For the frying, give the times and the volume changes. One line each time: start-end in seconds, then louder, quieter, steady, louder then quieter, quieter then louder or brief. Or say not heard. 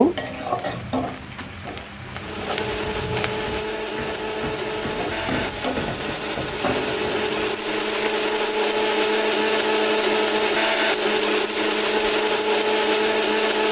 0.0-13.6 quieter.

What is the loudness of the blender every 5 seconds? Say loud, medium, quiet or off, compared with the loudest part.
medium, loud, loud.